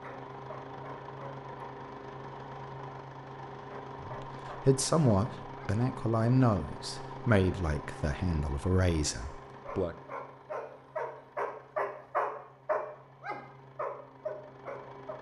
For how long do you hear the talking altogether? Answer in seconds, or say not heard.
6 s.